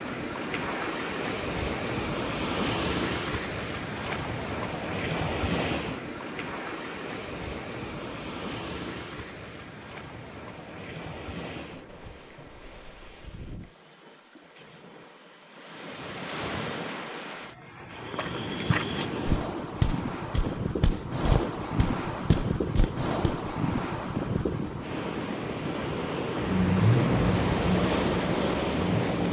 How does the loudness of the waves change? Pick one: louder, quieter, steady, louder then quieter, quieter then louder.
quieter then louder.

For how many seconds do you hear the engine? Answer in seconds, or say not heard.
3 s.